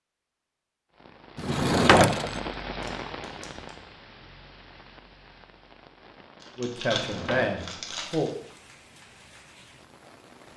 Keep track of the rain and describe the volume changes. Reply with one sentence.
The loudness of the rain goes down.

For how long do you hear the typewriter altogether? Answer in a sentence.
You can't hear the typewriter here.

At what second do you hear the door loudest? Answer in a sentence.
The loudest moment of the door is at 2 seconds.